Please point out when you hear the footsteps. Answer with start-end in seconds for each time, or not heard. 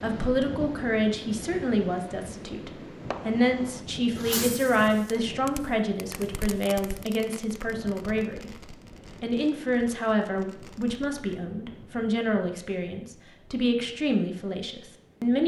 not heard.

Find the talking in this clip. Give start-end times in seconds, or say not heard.
0.0-15.4.